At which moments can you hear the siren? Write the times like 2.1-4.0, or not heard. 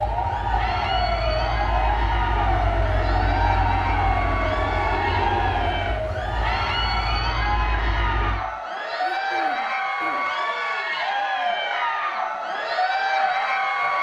0.0-7.2.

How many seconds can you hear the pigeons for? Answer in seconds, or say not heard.
not heard.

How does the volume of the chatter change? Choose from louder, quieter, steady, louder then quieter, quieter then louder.
louder.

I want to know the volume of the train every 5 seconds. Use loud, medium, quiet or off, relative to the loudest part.
loud, loud, off.